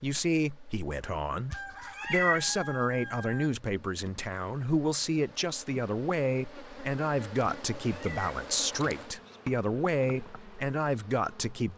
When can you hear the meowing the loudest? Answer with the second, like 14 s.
2 s.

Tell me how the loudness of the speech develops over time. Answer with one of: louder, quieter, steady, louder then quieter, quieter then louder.
steady.